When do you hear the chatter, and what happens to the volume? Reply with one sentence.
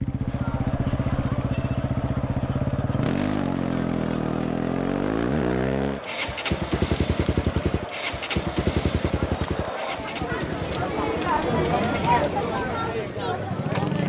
The chatter can be heard from 0.0 to 14.0 s, getting louder.